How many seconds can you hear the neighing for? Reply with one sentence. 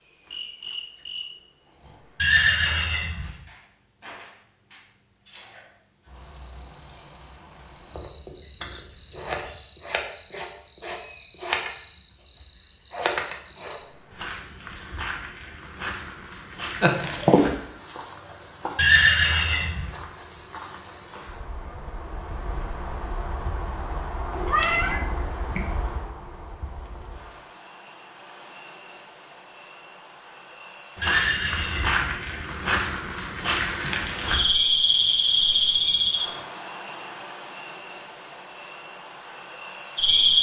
The neighing can be heard for 3 seconds in total.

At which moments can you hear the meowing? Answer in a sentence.
You can hear the meowing from 16.8 to 17.4 s and from 24.3 to 25.9 s.